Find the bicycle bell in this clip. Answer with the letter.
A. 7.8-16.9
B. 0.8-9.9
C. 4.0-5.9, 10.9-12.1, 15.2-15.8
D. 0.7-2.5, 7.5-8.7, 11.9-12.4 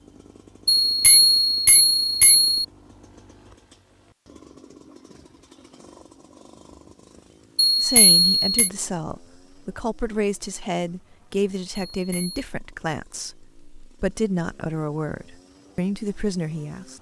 D.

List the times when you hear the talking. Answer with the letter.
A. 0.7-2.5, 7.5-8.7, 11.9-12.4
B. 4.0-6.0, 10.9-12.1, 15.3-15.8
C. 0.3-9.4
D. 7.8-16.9
D.